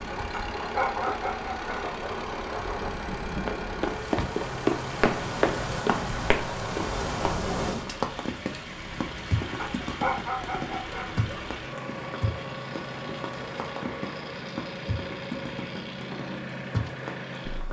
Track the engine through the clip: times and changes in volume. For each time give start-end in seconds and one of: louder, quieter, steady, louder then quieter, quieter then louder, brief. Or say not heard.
0.0-17.6 steady.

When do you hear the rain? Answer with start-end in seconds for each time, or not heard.
0.0-17.6.